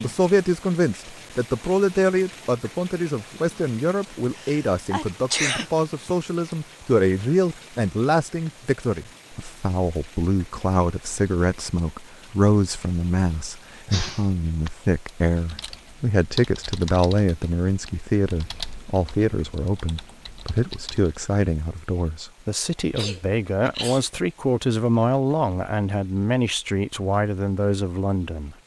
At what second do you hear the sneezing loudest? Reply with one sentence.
The volume of the sneezing peaks at 5 seconds.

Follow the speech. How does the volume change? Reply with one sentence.
The volume of the speech stays about the same.